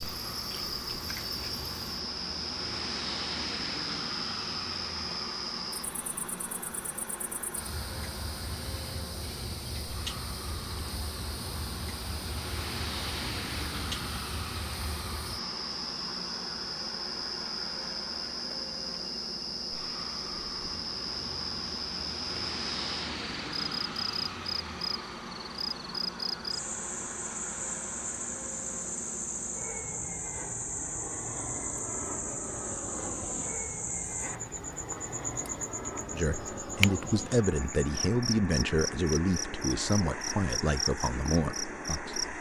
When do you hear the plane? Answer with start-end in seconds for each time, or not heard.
0.0-42.3.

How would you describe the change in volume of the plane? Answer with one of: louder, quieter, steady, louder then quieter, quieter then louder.
steady.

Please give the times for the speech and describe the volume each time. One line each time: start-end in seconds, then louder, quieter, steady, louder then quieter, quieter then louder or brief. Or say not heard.
36.1-42.3 steady.